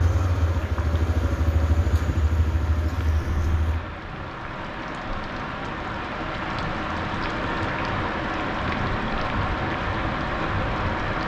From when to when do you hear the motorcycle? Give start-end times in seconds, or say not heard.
0.0-3.8.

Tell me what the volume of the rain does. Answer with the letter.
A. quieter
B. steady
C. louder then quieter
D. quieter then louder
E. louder
E.